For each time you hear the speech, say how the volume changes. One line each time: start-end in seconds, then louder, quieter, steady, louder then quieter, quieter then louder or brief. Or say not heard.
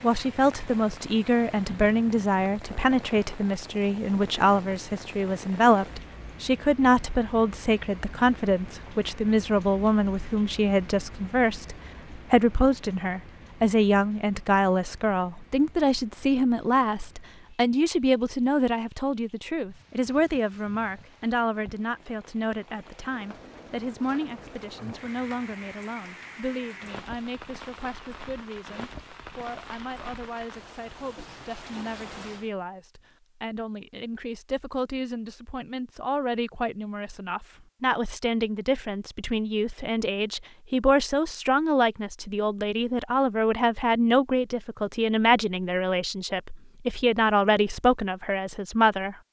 0.0-49.1 quieter then louder.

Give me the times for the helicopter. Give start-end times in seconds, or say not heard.
not heard.